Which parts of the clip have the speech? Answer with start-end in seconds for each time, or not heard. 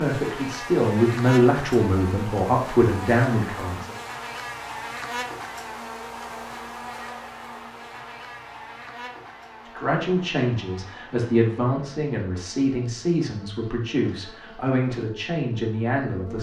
0.0-4.0, 9.8-16.3.